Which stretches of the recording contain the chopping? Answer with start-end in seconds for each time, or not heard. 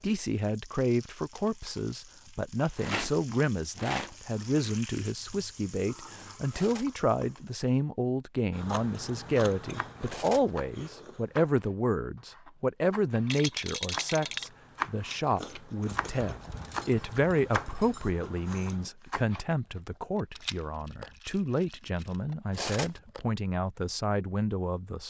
9.3-19.4.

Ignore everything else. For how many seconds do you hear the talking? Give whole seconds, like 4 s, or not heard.
25 s.